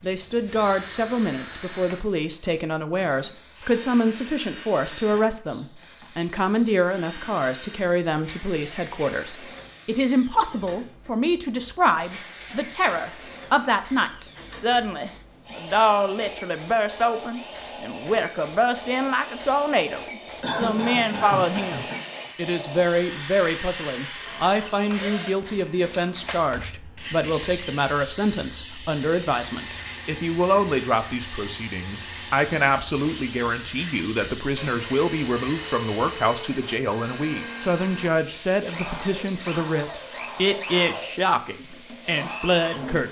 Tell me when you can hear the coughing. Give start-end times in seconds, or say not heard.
20.4-22.0.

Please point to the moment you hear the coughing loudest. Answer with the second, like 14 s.
21 s.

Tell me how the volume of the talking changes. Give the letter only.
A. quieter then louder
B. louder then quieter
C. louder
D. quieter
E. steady
E.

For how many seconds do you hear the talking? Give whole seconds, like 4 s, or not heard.
43 s.